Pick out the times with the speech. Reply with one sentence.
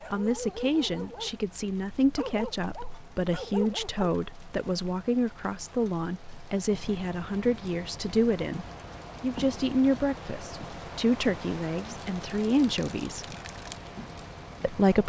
You can hear the speech from 0.1 to 13.2 s and from 14.6 to 15.0 s.